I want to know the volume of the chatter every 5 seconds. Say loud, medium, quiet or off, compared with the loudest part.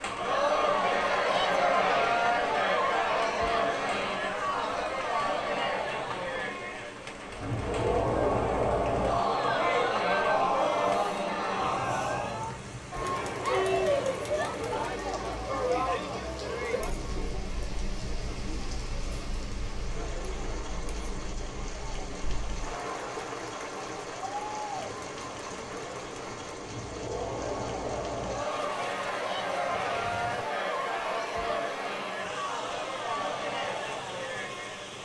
loud, loud, loud, medium, quiet, medium, medium.